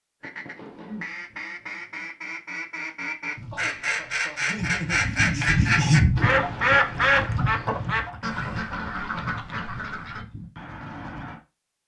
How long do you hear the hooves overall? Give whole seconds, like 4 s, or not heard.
6 s.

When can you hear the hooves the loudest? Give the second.
6 s.